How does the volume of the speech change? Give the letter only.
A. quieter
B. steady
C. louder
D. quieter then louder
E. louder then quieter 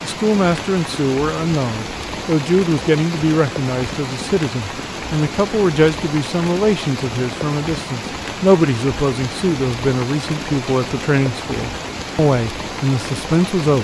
B.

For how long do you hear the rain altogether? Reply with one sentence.
You can hear the rain for 14 seconds altogether.